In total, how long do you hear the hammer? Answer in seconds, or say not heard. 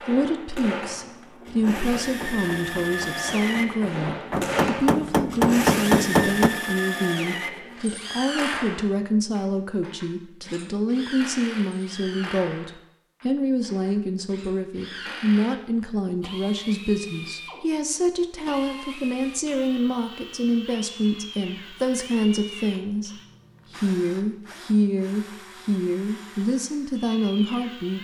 5 s.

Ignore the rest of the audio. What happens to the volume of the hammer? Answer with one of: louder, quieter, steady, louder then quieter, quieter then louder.
louder.